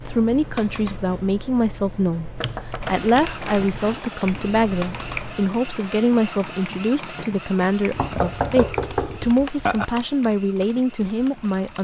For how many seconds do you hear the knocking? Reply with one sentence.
The knocking can be heard for 4 seconds in total.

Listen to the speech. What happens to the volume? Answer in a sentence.
The loudness of the speech stays about the same.